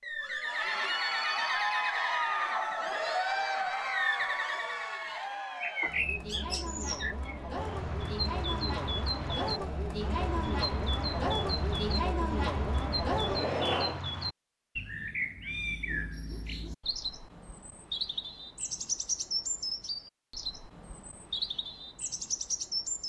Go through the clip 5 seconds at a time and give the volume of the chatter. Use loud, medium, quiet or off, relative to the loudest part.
loud, medium, loud, off, off.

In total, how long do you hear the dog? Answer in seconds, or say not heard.
not heard.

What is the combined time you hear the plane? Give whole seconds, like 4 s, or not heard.
not heard.